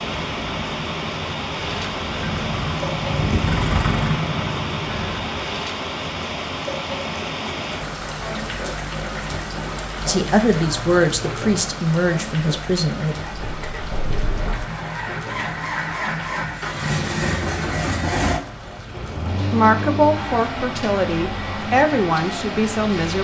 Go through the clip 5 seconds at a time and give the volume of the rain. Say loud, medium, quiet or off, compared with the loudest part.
loud, loud, loud, medium, medium.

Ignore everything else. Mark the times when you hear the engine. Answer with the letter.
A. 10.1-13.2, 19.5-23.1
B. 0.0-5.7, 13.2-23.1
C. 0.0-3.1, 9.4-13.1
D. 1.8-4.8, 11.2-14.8
B.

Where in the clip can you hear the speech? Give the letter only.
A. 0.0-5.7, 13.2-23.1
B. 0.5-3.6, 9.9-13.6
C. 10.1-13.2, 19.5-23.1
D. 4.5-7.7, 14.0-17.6
C.